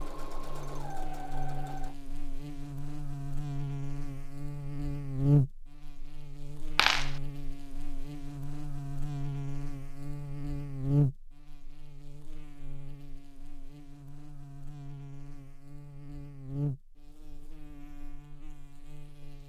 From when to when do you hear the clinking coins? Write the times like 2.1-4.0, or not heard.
6.8-7.2.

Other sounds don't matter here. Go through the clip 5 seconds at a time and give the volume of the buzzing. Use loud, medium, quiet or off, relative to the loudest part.
medium, loud, loud, medium.